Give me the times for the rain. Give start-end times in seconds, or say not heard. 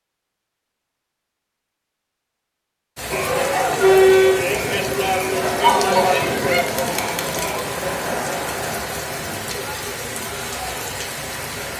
3.0-11.7.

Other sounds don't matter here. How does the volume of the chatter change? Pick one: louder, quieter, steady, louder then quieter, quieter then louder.
quieter.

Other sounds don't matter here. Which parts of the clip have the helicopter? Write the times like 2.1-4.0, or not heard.
not heard.